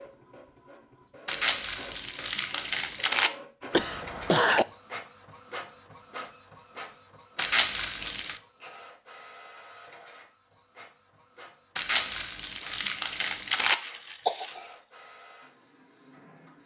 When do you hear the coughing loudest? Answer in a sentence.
The loudest moment of the coughing is at 4 seconds.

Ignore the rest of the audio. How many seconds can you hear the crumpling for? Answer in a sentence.
You can hear the crumpling for 5 seconds altogether.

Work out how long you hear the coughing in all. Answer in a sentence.
You can hear the coughing for 2 seconds altogether.